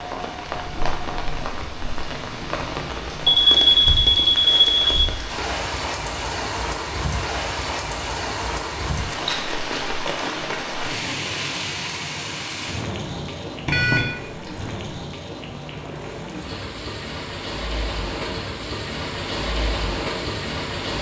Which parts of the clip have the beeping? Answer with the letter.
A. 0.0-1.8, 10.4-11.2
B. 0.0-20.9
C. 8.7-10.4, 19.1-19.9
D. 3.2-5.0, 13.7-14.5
D.